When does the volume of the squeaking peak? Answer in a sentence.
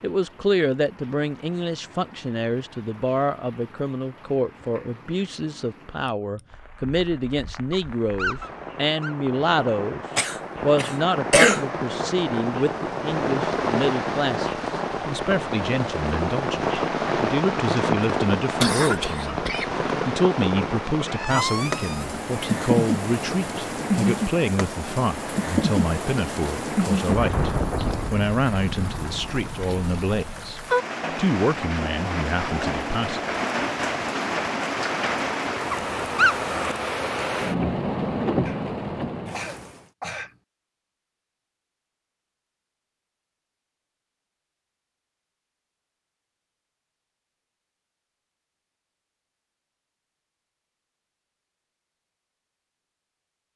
The loudest moment of the squeaking is at 36 seconds.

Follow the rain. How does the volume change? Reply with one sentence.
The loudness of the rain goes up.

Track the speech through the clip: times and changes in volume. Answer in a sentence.
The speech can be heard from 0.0 to 33.4 s, at a steady volume.